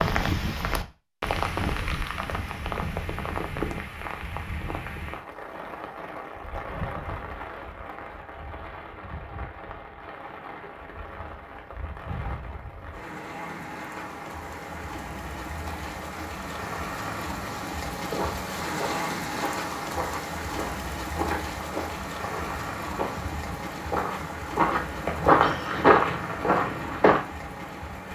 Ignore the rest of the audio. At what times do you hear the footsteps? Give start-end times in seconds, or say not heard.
18.1-27.2.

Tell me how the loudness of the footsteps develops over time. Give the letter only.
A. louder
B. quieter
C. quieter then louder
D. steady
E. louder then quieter
A.